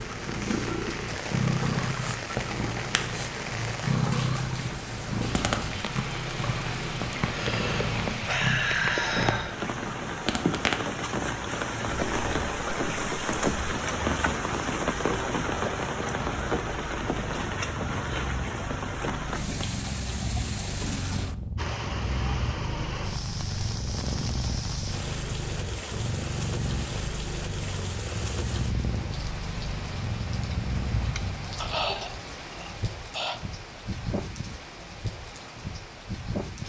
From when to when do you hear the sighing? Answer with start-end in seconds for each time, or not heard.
7.0-9.6, 31.1-33.4.